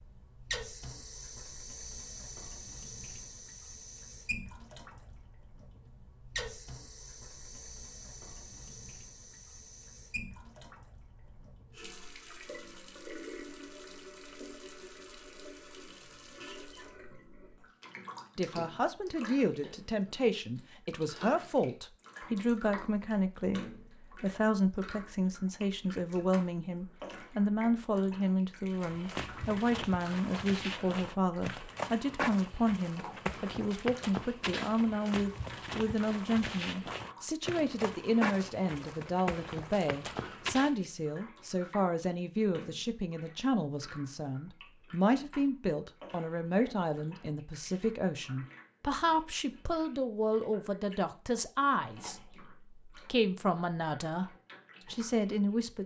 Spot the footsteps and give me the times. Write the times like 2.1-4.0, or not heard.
28.8-40.8.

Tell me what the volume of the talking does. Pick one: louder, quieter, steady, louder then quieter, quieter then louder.
steady.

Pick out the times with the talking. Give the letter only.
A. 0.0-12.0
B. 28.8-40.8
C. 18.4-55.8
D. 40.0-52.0
C.